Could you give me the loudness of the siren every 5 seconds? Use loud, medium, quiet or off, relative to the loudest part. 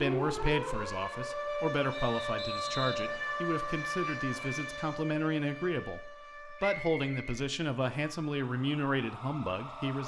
loud, medium.